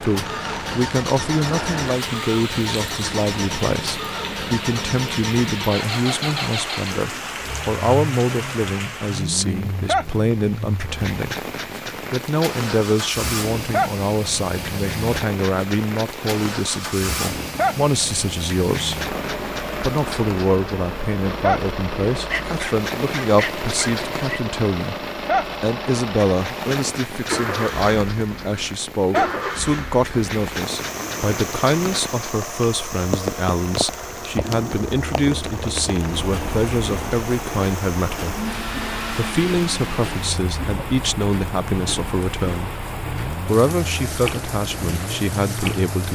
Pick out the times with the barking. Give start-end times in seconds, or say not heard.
22.1-24.4.